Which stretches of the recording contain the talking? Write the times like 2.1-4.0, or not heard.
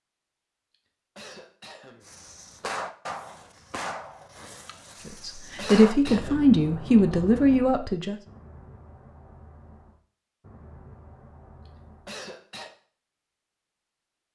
5.0-8.2.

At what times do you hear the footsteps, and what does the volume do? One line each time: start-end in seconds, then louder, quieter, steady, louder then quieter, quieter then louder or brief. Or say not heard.
not heard.